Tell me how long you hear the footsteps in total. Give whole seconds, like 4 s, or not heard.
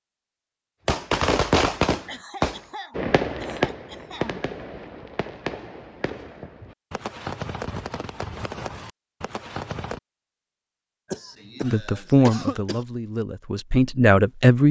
not heard.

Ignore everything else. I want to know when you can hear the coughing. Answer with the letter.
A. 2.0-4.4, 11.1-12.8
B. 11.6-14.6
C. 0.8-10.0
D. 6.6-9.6
A.